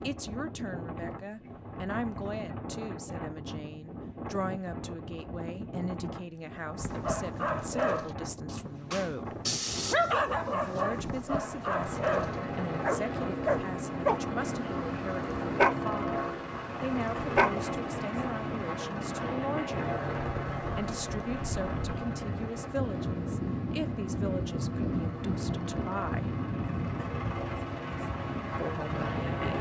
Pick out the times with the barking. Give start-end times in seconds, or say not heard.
6.8-17.6.